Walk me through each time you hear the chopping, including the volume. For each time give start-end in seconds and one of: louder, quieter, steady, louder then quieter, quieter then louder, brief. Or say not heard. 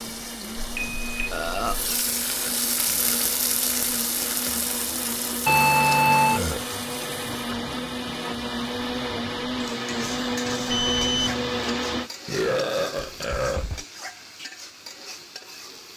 not heard.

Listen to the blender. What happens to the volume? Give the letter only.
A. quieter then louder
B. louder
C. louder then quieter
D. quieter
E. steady
B.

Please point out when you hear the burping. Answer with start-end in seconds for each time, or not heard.
1.3-1.8, 6.3-6.7, 12.2-13.8.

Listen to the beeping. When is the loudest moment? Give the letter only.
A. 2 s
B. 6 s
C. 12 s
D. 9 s
B.